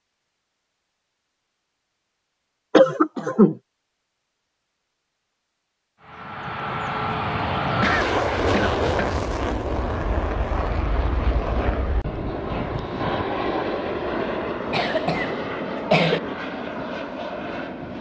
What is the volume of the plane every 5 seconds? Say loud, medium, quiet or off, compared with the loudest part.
off, loud, loud, medium.